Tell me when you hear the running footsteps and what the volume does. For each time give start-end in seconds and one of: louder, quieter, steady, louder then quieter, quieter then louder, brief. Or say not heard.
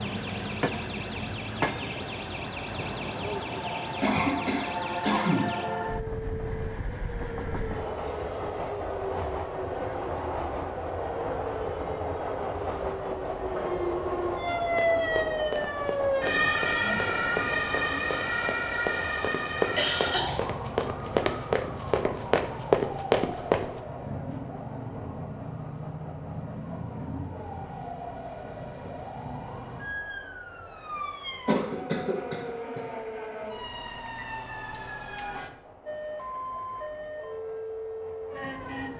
14.7-23.8 louder.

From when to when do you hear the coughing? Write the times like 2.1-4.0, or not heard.
4.0-5.5, 18.7-20.4, 31.4-32.8.